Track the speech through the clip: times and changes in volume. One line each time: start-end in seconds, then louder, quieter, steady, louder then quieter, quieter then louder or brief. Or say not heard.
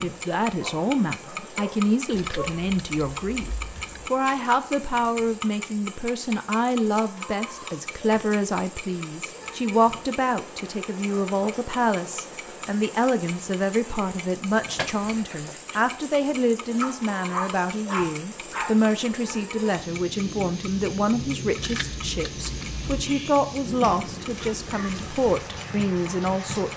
0.0-26.7 steady.